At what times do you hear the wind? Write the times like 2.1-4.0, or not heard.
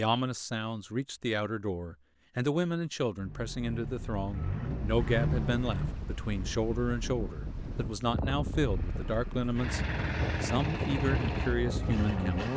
4.7-12.5.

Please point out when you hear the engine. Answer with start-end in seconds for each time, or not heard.
3.1-6.0, 8.6-12.5.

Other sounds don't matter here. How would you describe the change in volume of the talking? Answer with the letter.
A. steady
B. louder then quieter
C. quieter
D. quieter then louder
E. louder
A.